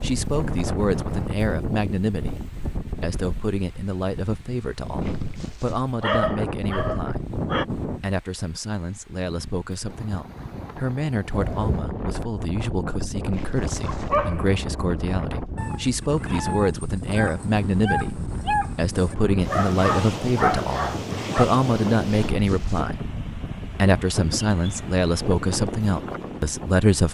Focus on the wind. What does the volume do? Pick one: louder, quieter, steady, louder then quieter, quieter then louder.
steady.